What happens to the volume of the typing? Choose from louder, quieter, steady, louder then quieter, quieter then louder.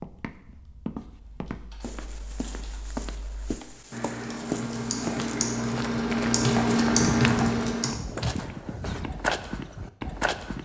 louder.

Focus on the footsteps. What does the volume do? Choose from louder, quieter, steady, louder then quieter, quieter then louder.
louder.